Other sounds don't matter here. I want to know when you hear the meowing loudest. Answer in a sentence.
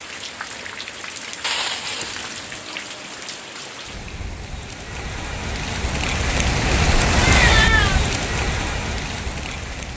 The loudest moment of the meowing is at 8 seconds.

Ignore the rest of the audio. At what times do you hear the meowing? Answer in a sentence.
You can hear the meowing from 1.4 to 2.6 s and from 7.3 to 8.0 s.